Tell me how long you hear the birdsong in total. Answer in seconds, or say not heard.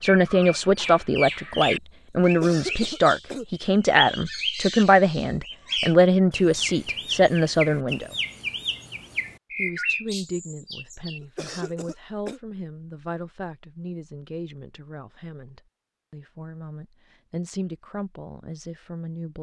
11 s.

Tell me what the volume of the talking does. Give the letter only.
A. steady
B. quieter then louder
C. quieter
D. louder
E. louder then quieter
C.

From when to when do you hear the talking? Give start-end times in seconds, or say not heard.
0.0-8.2, 9.6-19.3.